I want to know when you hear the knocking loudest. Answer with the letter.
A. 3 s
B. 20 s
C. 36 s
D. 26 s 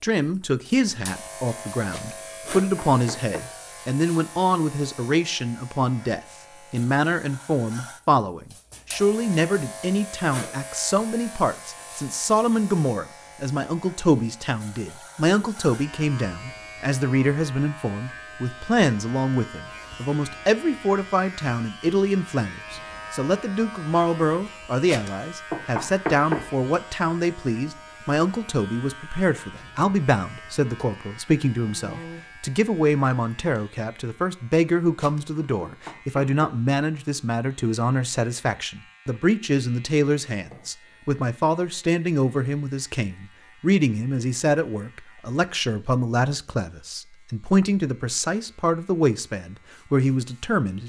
D.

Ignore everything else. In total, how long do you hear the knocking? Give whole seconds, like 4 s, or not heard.
5 s.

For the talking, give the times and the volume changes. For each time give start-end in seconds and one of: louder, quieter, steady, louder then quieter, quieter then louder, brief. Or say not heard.
0.0-50.8 steady.